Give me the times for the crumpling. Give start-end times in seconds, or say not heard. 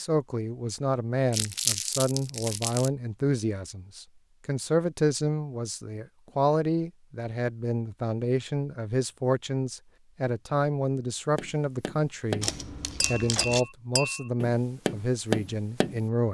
1.3-2.9, 12.4-13.7.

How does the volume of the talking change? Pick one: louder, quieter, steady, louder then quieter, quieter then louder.
steady.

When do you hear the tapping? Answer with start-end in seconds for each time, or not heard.
11.3-16.0.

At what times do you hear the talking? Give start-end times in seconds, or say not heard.
0.0-16.2.